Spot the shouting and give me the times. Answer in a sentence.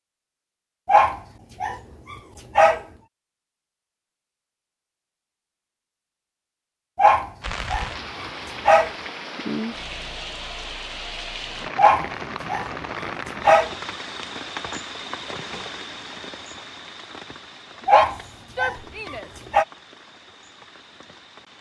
You can hear the shouting from 17.8 to 19.3 s.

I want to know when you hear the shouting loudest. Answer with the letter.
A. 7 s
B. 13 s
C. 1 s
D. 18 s
D.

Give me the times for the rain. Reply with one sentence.
You can hear the rain from 7.4 to 21.5 s.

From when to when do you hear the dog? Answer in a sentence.
You can hear the dog from 0.8 to 2.8 s, from 7.0 to 8.9 s, from 11.8 to 13.7 s and from 17.9 to 19.6 s.